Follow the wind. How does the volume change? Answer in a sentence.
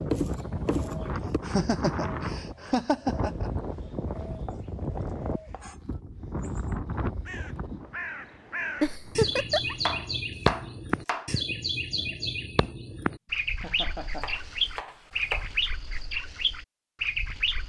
The loudness of the wind goes down.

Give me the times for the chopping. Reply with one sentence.
The chopping can be heard from 0.1 to 1.4 s, from 4.5 to 5.8 s, from 9.8 to 11.3 s and from 14.2 to 15.7 s.